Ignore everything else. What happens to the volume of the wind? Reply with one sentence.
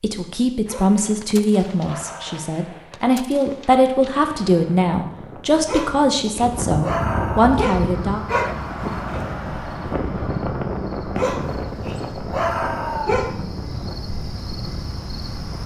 The volume of the wind goes up, then down.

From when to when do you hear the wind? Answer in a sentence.
The wind can be heard from 3.9 to 15.6 s.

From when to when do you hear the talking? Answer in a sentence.
The talking can be heard from 0.0 to 8.2 s.